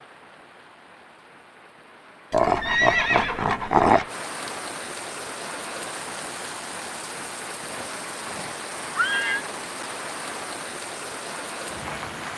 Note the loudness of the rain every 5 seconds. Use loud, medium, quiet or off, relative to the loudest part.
medium, loud, loud.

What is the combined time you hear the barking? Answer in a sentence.
The barking can be heard for 2 seconds in total.